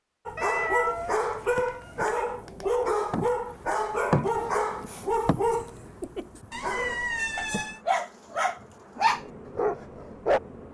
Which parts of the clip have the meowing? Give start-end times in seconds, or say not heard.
0.3-2.2, 6.5-7.8.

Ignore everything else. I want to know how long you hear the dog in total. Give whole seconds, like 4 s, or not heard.
10 s.